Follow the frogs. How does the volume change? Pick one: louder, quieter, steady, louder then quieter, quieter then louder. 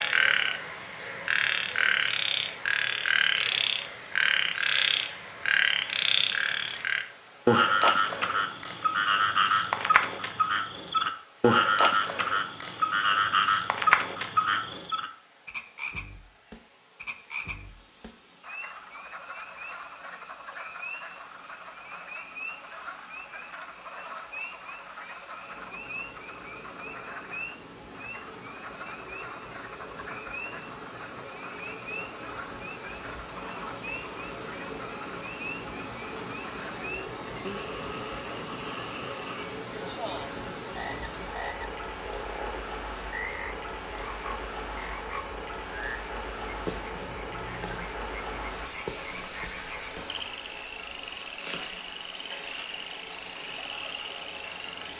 quieter.